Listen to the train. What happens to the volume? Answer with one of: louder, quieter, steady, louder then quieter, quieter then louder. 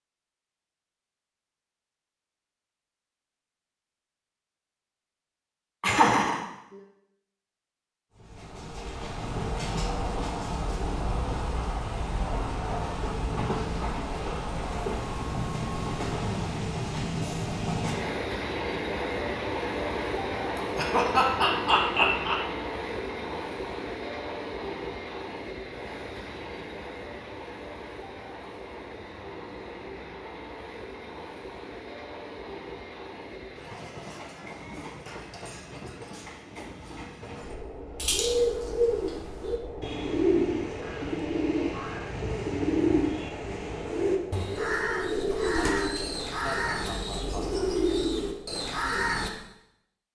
quieter.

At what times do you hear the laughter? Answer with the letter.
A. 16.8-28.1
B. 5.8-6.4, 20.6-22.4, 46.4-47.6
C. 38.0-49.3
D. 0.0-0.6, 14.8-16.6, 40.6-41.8
B.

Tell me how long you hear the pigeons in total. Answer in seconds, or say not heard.
11 s.